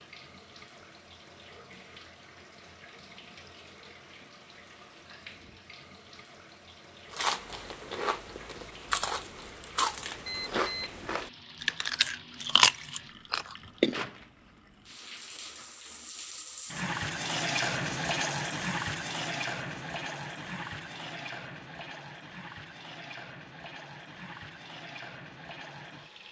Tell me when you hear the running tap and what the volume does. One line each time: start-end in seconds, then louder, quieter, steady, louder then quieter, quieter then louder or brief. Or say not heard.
0.0-26.2 louder then quieter.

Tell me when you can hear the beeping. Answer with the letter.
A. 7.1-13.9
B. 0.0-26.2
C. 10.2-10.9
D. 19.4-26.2
C.